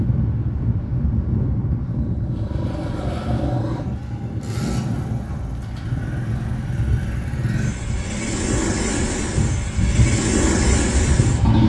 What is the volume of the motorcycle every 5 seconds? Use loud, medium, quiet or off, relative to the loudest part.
medium, medium, loud.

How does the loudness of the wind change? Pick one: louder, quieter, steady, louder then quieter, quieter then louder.
quieter then louder.